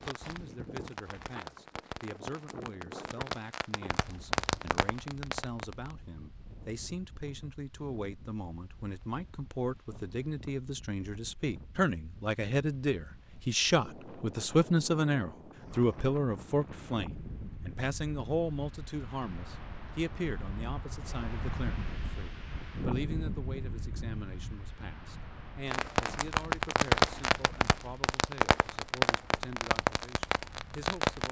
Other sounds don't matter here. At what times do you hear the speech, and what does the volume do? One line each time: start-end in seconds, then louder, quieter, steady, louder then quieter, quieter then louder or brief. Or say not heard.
0.0-31.2 louder then quieter.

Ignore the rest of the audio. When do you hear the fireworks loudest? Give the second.
27 s.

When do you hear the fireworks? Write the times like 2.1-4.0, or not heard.
0.0-6.0, 25.6-31.2.